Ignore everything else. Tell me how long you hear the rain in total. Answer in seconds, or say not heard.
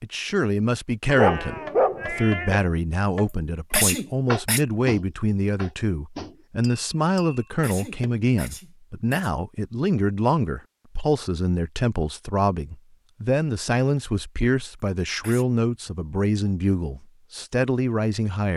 not heard.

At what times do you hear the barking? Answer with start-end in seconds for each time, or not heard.
1.1-2.6.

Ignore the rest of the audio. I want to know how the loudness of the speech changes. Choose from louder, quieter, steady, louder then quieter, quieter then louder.
steady.